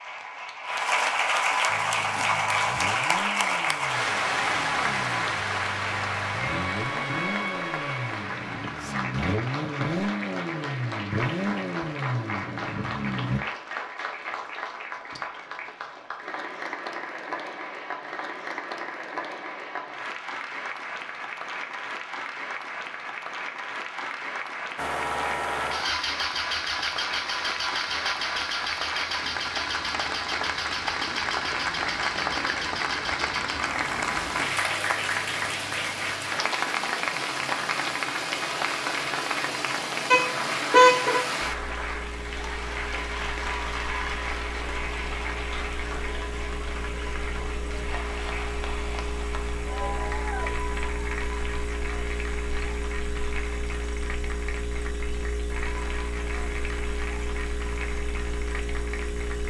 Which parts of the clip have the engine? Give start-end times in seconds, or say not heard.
1.6-13.4, 24.8-59.4.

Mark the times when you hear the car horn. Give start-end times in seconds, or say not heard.
40.1-41.2.